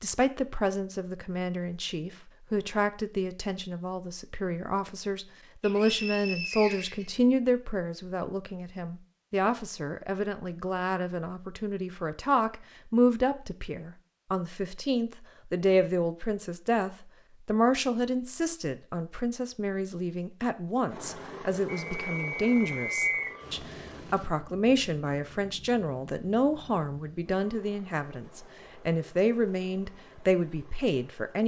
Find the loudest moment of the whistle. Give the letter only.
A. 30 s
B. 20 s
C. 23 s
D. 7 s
C.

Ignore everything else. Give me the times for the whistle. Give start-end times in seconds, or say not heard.
5.6-7.1, 21.6-23.4.